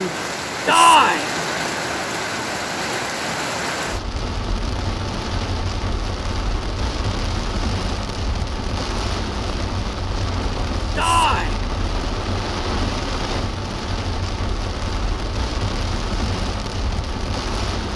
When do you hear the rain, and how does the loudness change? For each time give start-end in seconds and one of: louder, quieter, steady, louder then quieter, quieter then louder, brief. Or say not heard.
0.0-17.9 steady.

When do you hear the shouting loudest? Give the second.
1 s.